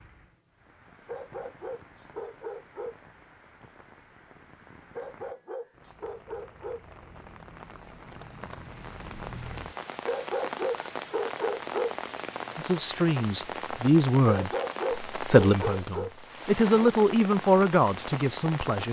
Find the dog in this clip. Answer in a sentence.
The dog can be heard from 1.1 to 3.0 s, from 5.0 to 6.8 s, from 10.1 to 11.9 s and from 14.2 to 16.1 s.